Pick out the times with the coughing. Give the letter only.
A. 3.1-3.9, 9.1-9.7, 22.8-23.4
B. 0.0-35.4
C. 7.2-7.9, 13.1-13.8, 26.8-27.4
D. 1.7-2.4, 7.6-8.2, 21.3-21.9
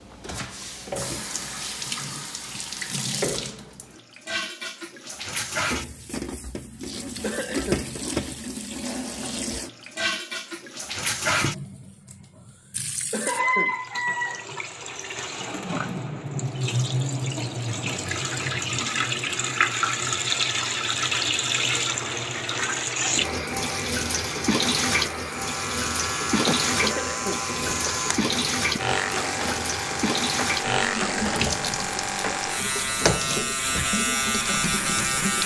C.